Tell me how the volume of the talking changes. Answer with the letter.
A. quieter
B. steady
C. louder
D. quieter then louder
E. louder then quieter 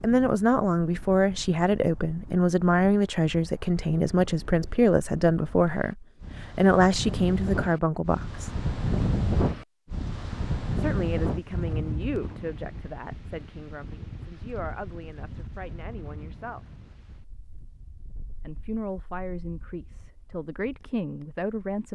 D.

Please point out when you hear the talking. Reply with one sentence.
The talking can be heard from 0.0 to 8.5 s, from 10.8 to 16.6 s and from 18.4 to 21.9 s.